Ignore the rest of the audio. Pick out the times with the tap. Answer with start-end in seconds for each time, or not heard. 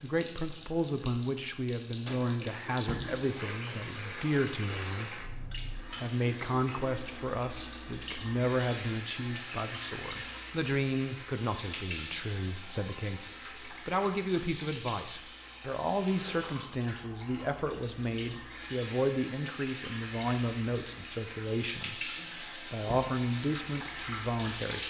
0.0-24.8.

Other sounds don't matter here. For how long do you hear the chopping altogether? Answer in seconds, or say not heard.
not heard.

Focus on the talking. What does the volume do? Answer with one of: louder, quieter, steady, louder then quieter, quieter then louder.
steady.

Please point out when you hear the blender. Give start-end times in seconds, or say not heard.
not heard.